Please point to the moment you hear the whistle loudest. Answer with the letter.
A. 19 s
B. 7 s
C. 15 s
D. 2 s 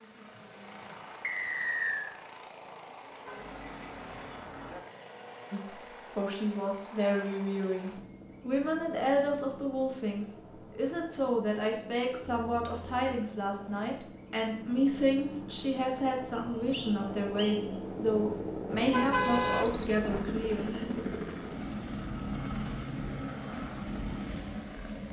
D.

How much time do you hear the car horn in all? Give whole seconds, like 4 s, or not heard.
4 s.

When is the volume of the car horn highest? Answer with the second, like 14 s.
19 s.